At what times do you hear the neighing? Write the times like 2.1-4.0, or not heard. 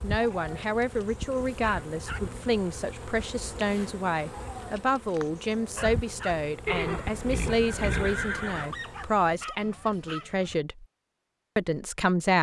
6.7-8.7.